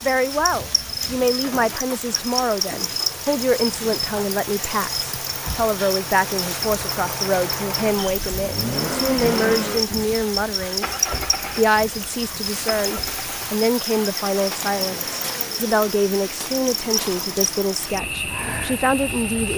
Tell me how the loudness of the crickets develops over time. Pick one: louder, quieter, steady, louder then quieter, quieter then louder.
steady.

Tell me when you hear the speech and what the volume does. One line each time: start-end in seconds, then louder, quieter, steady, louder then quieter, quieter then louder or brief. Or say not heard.
0.0-19.5 steady.